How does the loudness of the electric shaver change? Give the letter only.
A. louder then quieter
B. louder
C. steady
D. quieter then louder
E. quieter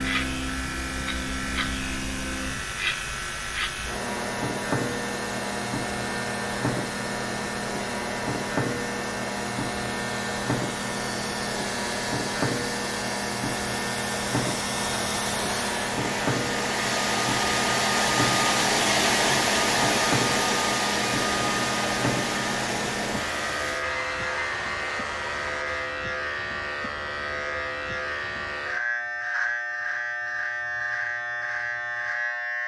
C.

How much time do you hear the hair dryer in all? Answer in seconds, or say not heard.
26 s.